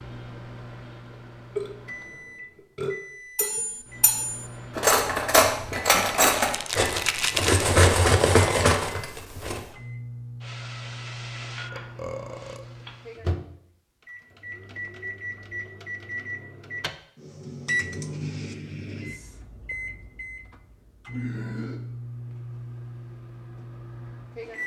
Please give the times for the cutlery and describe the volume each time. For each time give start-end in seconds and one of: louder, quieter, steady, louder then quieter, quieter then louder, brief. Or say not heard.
3.4-9.6 louder.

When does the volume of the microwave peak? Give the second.
18 s.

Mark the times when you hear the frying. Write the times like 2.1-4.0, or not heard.
10.4-13.2.